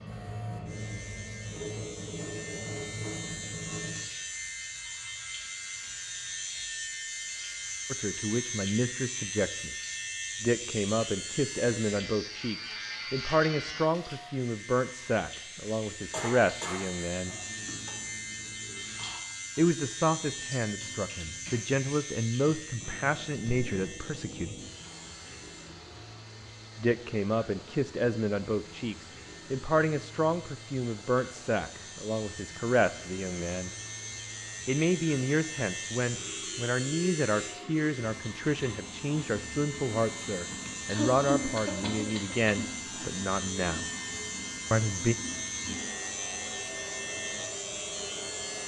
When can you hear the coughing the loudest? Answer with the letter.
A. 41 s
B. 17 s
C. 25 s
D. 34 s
A.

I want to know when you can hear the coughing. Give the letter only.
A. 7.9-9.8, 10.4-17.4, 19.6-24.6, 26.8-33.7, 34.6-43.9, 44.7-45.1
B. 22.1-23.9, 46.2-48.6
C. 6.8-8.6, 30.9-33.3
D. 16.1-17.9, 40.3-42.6
D.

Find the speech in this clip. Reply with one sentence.
The speech can be heard from 7.9 to 9.8 s, from 10.4 to 17.4 s, from 19.6 to 24.6 s, from 26.8 to 33.7 s, from 34.6 to 43.9 s and from 44.7 to 45.1 s.